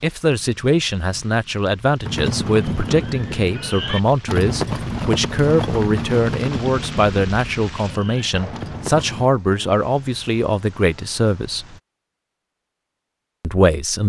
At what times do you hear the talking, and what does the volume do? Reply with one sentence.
The talking can be heard from 0.0 to 11.8 s, at a steady volume; and briefly from 13.4 to 14.0 s.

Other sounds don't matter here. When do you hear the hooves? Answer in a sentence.
You can hear the hooves from 2.0 to 9.3 s.